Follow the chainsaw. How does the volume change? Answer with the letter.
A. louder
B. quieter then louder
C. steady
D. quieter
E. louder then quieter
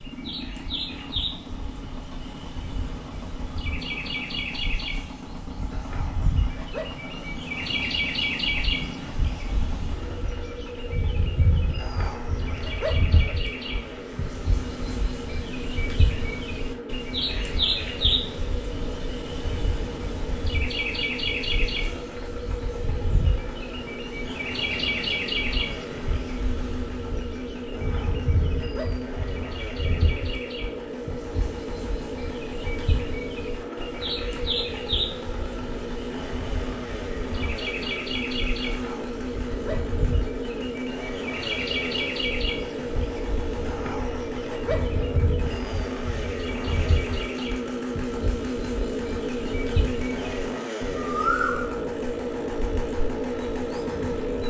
A.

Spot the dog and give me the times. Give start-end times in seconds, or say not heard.
5.7-7.2, 11.8-13.3, 27.7-29.1, 38.6-40.0, 43.6-45.2.